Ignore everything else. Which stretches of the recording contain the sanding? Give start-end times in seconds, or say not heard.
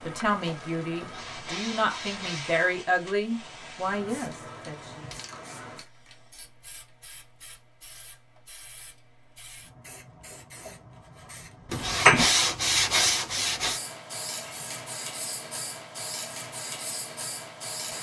0.9-2.6, 11.7-13.8.